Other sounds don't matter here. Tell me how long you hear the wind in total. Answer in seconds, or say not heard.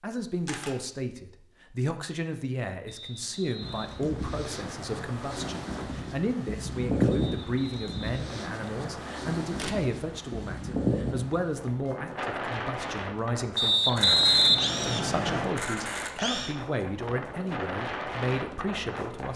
16 s.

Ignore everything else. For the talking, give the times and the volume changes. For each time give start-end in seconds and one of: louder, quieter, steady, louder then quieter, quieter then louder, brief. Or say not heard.
0.0-19.3 steady.